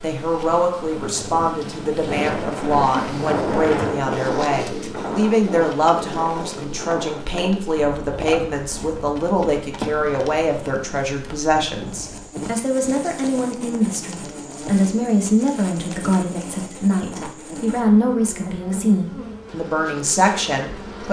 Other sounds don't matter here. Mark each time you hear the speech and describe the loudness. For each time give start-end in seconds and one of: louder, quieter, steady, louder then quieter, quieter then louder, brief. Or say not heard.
0.0-21.0 steady.